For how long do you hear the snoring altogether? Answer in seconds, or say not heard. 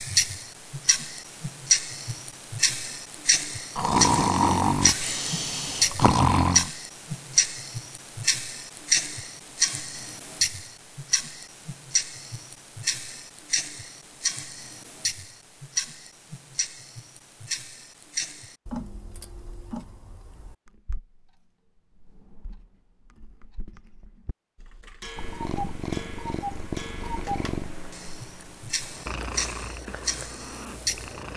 3 s.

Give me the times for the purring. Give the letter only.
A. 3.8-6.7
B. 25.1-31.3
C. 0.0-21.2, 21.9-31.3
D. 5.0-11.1
B.